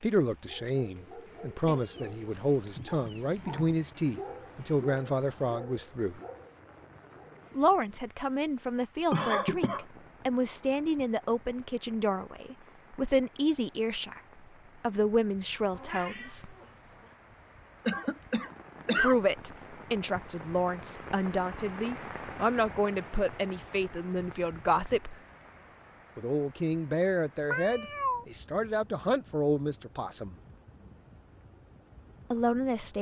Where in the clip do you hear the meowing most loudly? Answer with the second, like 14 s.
28 s.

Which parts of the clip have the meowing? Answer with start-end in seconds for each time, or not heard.
1.6-3.2, 15.7-17.1, 27.5-28.2.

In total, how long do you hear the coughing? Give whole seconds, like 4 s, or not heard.
2 s.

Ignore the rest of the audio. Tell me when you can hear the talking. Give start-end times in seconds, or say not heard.
0.0-6.2, 7.5-14.2, 14.8-16.6, 18.9-25.1, 26.1-30.4, 32.3-32.9.